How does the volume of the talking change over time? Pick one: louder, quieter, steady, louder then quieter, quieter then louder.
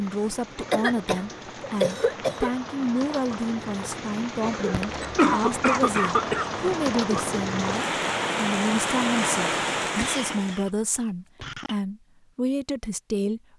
steady.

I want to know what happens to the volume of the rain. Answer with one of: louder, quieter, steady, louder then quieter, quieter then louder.
louder.